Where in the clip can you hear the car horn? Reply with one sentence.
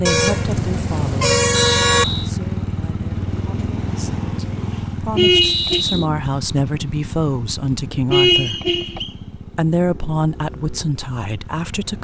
You can hear the car horn from 0.1 to 2.0 s, from 5.2 to 5.8 s and from 8.1 to 9.1 s.